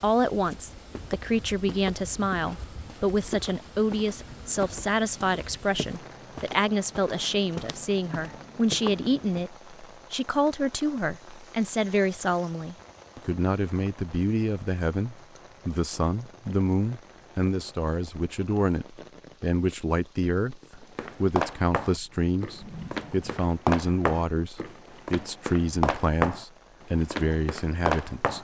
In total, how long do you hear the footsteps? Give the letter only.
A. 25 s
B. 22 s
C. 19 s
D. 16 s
D.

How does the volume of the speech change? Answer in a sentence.
The loudness of the speech stays about the same.